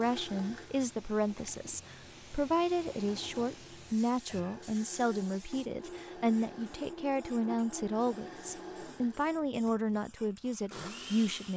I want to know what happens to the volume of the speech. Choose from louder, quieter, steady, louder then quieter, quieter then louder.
steady.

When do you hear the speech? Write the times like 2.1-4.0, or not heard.
0.0-11.5.